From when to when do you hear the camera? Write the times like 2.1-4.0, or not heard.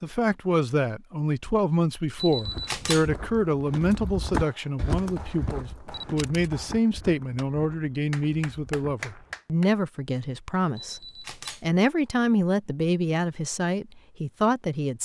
2.1-3.1, 5.9-6.5, 10.8-11.7.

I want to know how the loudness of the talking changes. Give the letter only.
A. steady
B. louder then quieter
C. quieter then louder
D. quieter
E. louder
A.